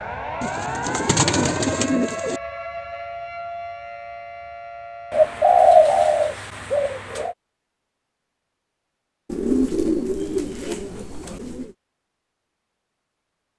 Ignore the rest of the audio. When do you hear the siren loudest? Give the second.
1 s.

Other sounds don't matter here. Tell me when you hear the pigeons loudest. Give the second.
6 s.